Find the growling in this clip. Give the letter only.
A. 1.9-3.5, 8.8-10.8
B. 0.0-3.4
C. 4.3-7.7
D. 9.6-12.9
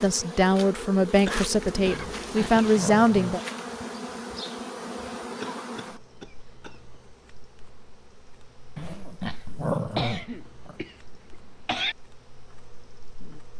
A.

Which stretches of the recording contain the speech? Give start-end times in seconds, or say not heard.
0.0-3.4.